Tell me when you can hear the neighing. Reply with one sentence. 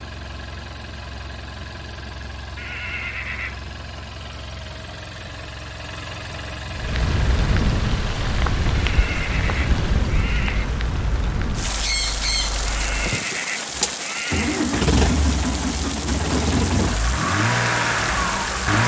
The neighing can be heard from 2.5 to 3.7 s, from 8.8 to 10.8 s and from 12.7 to 14.7 s.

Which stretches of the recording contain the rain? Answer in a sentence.
You can hear the rain from 6.7 to 18.8 s.